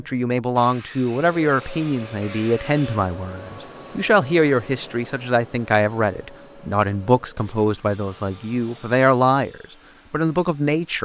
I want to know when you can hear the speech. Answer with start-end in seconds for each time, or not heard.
0.0-11.0.